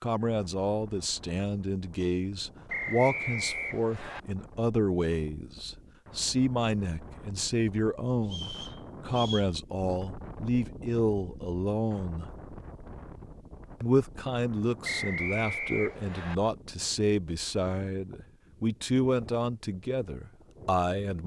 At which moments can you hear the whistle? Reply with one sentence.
The whistle can be heard from 2.6 to 4.2 s, from 8.2 to 9.5 s and from 14.8 to 16.4 s.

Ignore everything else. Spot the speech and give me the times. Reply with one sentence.
You can hear the speech from 0.0 to 12.3 s and from 13.8 to 21.2 s.